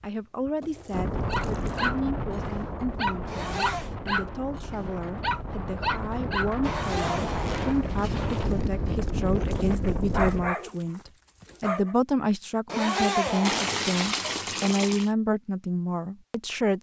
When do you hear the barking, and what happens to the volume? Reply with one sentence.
The barking can be heard from 1.2 to 11.9 s, getting quieter then louder.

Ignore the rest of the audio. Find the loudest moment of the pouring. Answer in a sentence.
The volume of the pouring peaks at 14 seconds.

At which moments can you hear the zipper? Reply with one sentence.
You can hear the zipper from 3.2 to 4.0 s, from 6.6 to 8.7 s and from 12.7 to 13.9 s.